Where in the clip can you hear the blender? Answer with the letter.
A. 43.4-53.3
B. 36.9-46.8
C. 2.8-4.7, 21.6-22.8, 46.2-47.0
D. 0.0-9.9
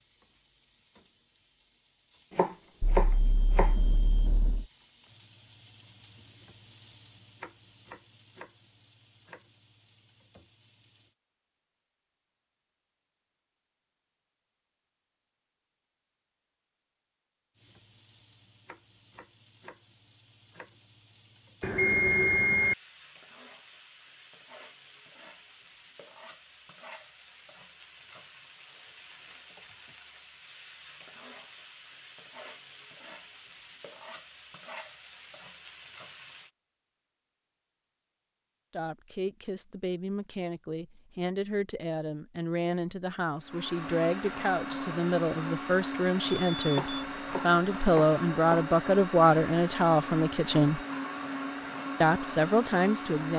A.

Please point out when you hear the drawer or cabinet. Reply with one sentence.
You can't hear the drawer or cabinet here.